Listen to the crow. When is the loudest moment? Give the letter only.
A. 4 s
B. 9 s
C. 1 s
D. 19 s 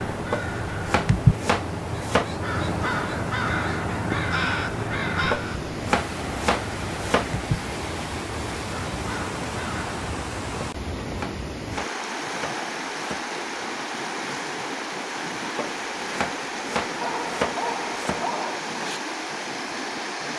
C.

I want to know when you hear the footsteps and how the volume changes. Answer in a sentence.
You can't hear the footsteps here.